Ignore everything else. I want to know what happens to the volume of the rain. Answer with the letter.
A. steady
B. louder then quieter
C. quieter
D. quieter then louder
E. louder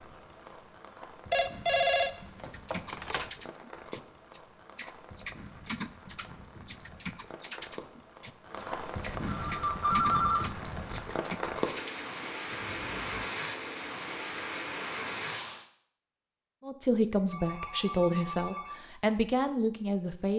E.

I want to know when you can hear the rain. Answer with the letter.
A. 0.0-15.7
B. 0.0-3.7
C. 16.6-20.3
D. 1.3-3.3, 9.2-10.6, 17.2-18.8
A.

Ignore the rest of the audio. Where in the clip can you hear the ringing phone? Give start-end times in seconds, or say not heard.
1.3-3.3, 9.2-10.6, 17.2-18.8.